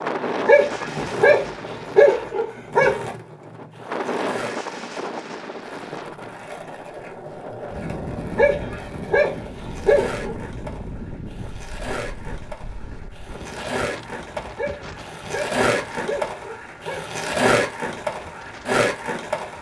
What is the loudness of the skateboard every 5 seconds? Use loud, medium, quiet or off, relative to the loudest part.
medium, quiet, medium, loud.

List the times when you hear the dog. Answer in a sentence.
The dog can be heard from 0.5 to 3.0 s, from 8.3 to 10.3 s and from 14.6 to 17.1 s.